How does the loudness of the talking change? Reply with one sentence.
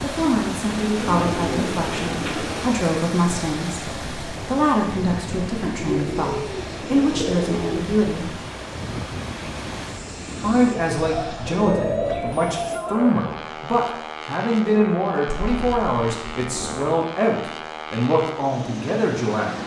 The loudness of the talking stays about the same.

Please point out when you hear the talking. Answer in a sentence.
The talking can be heard from 0.0 to 8.3 s and from 10.4 to 19.6 s.